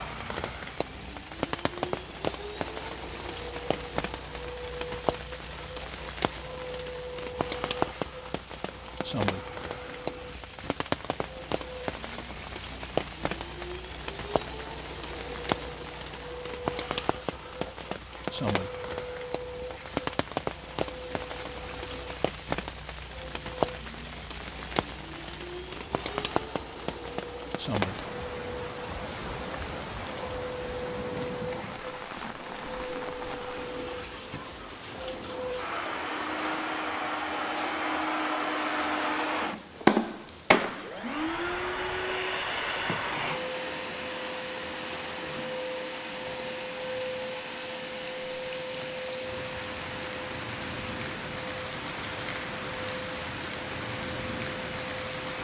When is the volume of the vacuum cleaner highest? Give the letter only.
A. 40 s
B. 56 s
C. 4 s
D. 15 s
A.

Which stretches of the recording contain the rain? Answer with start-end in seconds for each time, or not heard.
0.0-55.3.